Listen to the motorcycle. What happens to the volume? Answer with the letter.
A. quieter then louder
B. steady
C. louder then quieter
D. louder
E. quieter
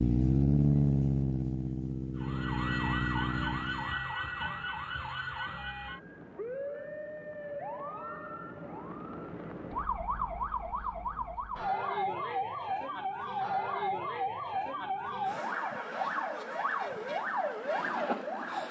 E.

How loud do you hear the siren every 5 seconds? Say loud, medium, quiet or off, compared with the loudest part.
loud, medium, loud, loud.